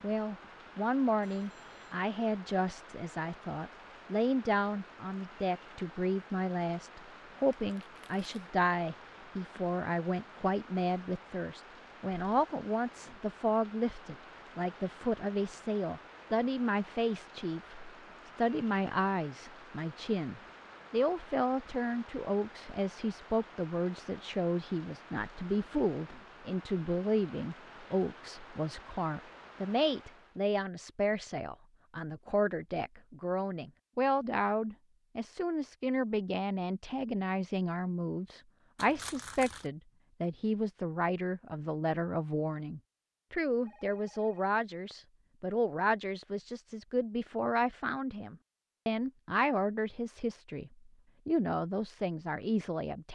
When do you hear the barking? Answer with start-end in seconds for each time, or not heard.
not heard.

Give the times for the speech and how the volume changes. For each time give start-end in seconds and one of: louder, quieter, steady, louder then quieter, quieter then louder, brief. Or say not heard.
0.0-53.1 steady.